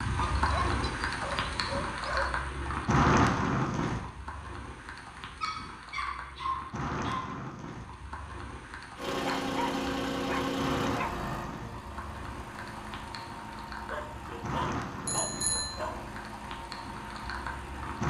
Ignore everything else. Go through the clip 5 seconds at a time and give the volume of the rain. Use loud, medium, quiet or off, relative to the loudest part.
loud, medium, medium, medium.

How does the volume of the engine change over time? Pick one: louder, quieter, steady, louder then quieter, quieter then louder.
quieter.